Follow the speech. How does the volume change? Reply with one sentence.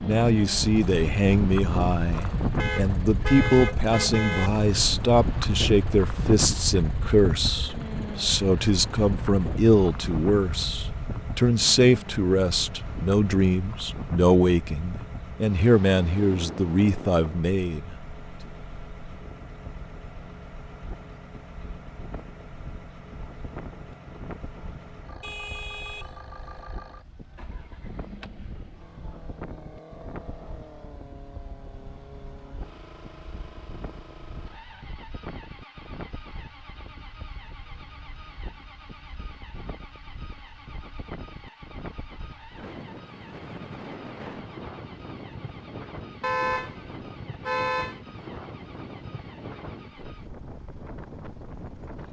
The volume of the speech stays about the same.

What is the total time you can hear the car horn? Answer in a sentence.
The car horn can be heard for 5 seconds in total.